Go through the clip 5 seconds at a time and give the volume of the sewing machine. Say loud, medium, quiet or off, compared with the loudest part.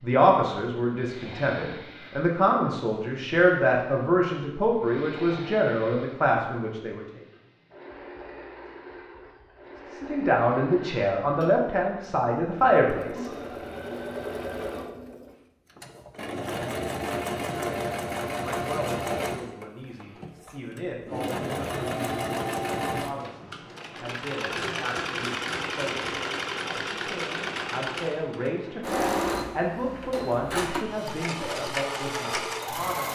quiet, quiet, medium, loud, loud, loud, loud.